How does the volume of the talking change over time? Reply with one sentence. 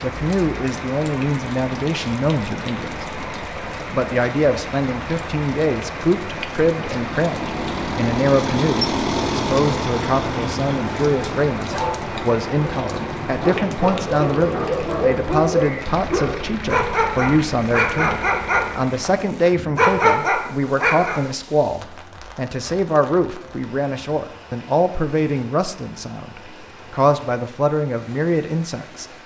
The loudness of the talking stays about the same.